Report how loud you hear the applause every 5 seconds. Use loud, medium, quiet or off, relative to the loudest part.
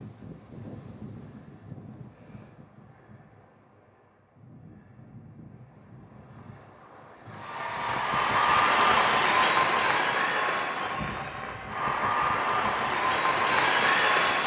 off, loud, loud.